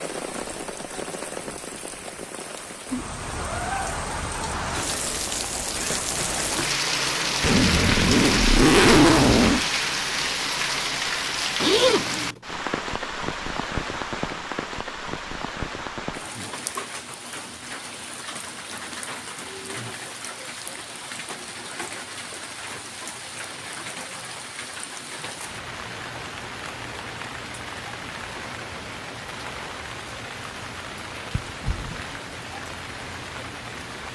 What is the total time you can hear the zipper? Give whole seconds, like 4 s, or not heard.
4 s.